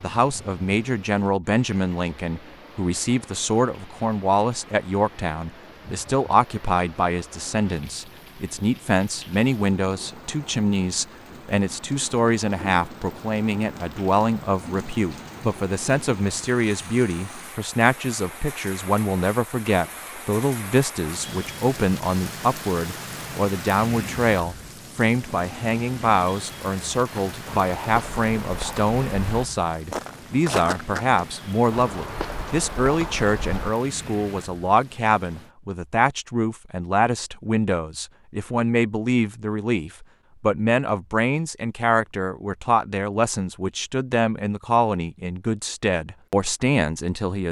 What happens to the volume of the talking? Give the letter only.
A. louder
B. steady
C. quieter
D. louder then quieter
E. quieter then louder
B.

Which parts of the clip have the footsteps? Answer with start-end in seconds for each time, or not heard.
27.2-33.7.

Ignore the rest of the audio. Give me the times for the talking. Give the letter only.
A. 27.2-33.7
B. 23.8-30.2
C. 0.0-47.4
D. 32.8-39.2
C.